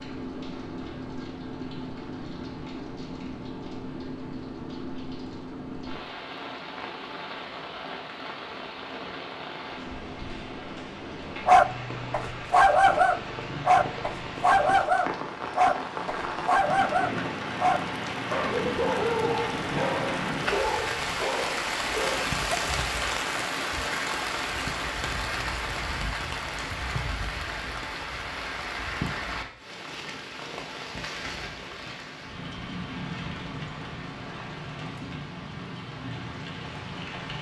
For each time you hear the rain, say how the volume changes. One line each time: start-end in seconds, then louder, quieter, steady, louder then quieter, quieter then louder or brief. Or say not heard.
0.0-37.3 louder then quieter.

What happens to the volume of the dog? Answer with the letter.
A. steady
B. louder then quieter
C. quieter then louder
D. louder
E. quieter
E.